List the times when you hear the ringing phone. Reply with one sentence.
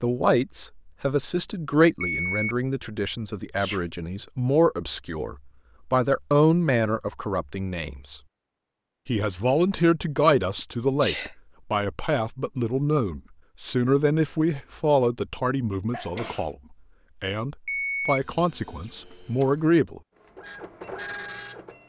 The ringing phone can be heard from 2.0 to 2.5 s and from 17.6 to 18.2 s.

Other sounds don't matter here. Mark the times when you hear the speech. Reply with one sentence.
You can hear the speech from 0.0 to 8.2 s, from 9.1 to 16.6 s and from 17.2 to 20.0 s.